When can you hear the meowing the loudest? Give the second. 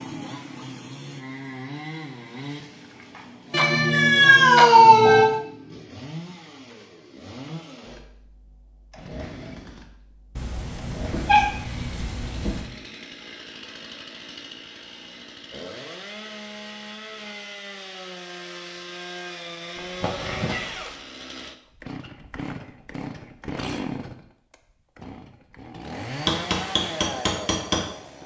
5 s.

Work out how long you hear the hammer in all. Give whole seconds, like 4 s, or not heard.
2 s.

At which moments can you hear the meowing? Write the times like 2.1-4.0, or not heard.
3.5-5.3, 10.3-12.7, 19.8-20.9.